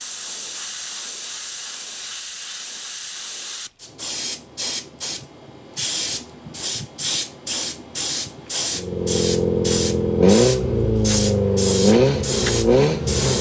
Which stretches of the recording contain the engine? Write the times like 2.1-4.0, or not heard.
8.7-13.3.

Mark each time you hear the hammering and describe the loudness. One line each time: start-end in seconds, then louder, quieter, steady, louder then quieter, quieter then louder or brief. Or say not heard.
not heard.